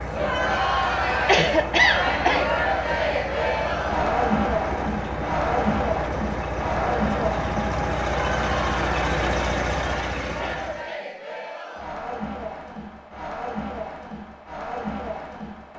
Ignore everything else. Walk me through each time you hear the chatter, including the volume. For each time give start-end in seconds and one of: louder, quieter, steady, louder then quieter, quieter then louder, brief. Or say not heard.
0.1-15.7 quieter.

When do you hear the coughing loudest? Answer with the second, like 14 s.
2 s.